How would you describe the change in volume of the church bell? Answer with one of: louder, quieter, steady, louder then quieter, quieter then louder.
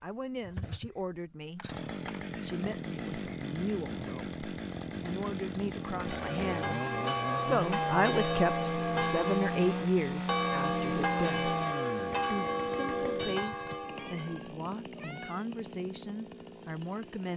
steady.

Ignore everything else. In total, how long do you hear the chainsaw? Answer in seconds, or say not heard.
17 s.